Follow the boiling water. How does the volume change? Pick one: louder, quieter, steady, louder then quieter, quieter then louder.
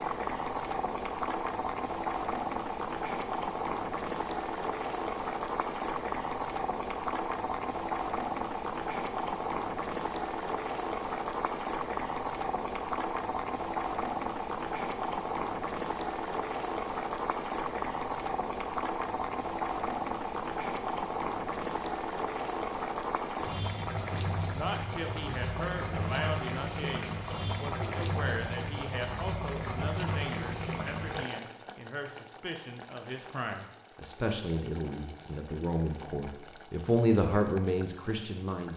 quieter.